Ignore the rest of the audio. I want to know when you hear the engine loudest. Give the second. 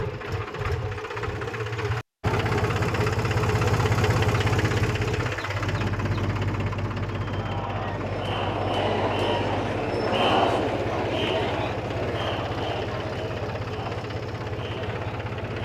4 s.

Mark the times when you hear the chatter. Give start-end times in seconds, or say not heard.
7.1-15.6.